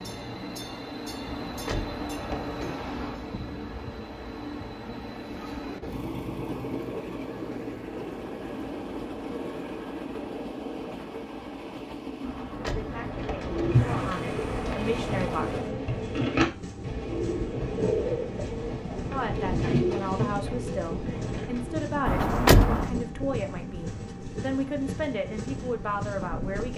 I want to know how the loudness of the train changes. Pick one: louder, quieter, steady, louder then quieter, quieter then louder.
steady.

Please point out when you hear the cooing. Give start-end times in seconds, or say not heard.
12.7-21.9.